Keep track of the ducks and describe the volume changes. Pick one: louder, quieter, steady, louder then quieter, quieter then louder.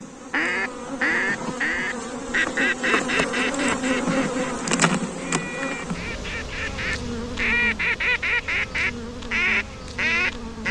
quieter then louder.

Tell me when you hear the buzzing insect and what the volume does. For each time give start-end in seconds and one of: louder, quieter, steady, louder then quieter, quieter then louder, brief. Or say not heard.
0.0-10.6 louder then quieter.